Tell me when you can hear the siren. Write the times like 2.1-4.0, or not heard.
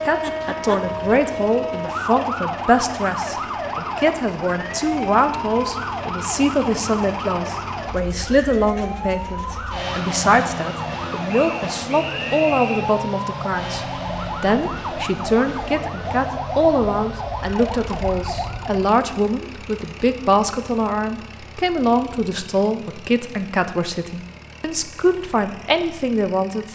0.0-19.0.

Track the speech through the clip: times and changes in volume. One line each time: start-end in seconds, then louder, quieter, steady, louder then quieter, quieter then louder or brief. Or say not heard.
0.1-13.8 steady
14.4-26.7 steady.